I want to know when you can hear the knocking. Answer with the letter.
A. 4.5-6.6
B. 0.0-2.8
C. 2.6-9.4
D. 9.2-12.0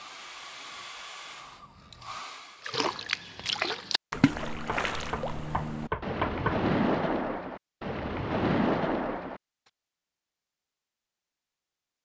A.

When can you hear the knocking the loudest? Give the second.
6 s.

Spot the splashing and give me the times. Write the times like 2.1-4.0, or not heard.
2.6-9.4.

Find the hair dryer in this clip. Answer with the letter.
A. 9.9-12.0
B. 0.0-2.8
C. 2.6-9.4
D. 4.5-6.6
B.